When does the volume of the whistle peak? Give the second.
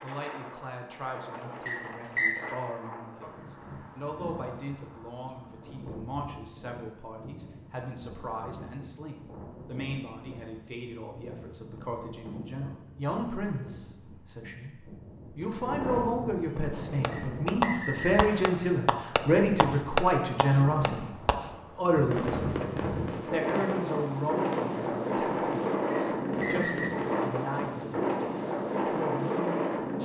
2 s.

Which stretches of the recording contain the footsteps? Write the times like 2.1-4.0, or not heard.
not heard.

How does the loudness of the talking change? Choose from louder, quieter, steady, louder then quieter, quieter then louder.
louder then quieter.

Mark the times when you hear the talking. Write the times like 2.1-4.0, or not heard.
0.0-21.1, 21.8-30.0.